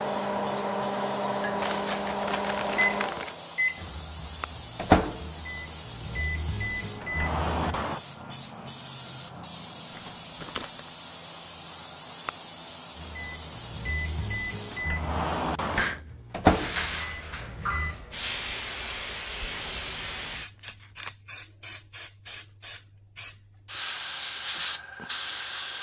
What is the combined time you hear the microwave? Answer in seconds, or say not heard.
13 s.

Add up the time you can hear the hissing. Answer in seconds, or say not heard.
26 s.